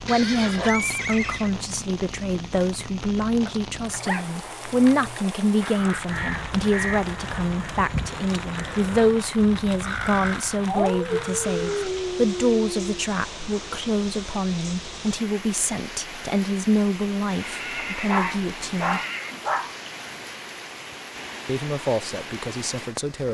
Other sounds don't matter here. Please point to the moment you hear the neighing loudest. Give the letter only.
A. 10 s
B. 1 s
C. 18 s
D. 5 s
B.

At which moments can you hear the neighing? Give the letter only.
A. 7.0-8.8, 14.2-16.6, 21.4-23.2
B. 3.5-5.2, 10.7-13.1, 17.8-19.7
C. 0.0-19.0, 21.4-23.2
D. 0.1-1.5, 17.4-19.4
D.